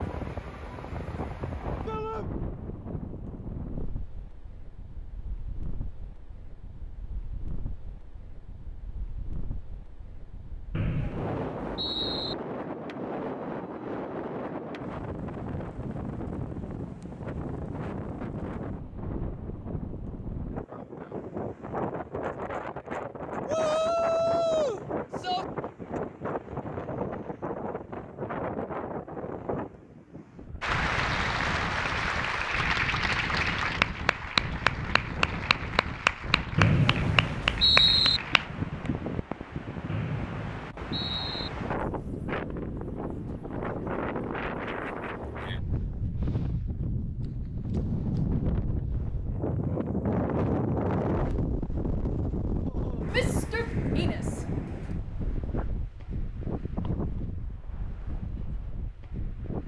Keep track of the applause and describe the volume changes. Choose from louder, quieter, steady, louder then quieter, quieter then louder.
steady.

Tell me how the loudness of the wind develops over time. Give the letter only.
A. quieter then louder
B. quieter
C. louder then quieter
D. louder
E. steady
D.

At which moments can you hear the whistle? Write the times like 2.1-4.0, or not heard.
10.7-12.3, 36.5-38.2, 39.9-41.5.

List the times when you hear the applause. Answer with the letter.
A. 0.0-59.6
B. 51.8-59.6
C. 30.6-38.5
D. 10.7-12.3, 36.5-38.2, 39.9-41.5
C.